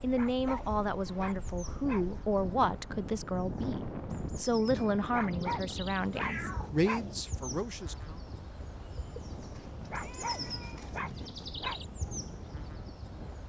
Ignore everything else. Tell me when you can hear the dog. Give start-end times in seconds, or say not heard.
0.1-2.5, 5.1-7.2, 9.9-11.8.